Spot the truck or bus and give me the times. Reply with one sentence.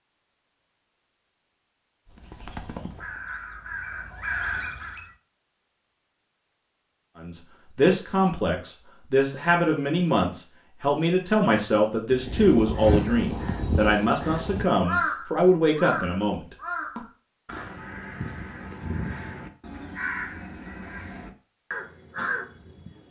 You can't hear the truck or bus here.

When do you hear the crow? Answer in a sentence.
The crow can be heard from 2.2 to 5.1 s and from 12.1 to 23.0 s.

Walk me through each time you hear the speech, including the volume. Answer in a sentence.
You can hear the speech from 7.2 to 17.0 s, at a steady volume.